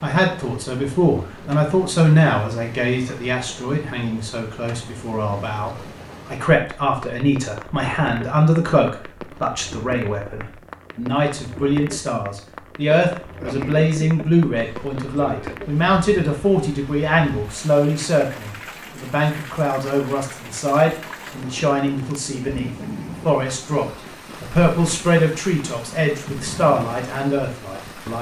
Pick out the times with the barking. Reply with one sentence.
You can't hear the barking here.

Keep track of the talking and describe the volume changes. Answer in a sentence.
The volume of the talking stays about the same.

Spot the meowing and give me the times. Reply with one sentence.
You can't hear the meowing here.